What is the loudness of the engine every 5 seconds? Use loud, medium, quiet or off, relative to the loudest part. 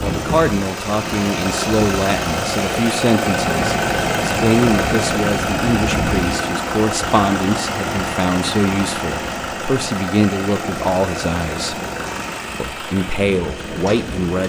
loud, loud, medium.